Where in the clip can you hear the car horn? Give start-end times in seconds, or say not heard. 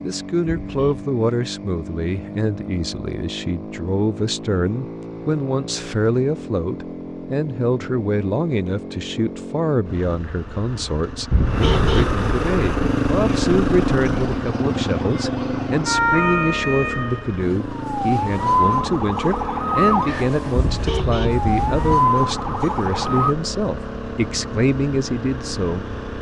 0.7-1.1, 11.3-12.1, 20.6-22.0.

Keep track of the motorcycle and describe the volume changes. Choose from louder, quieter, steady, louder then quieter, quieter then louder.
louder then quieter.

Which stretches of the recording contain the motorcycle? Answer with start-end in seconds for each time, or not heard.
0.0-26.1.